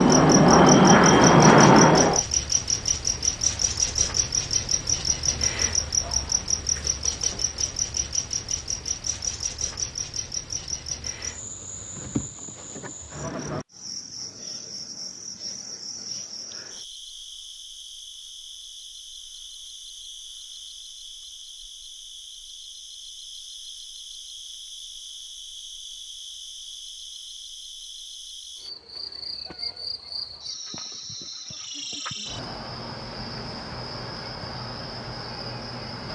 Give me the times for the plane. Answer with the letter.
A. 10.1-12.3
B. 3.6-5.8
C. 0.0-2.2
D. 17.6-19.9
C.